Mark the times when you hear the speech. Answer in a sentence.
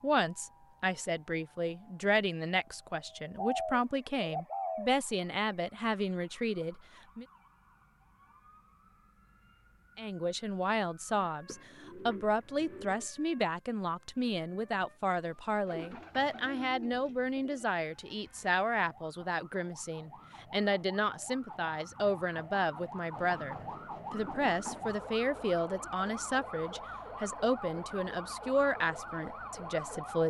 You can hear the speech from 0.0 to 7.2 s and from 9.9 to 30.2 s.